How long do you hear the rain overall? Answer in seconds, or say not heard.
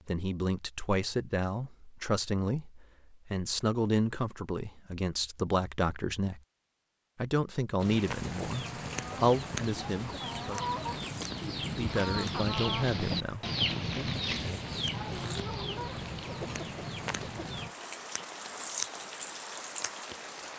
13 s.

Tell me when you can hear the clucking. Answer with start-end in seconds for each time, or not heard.
7.9-17.7.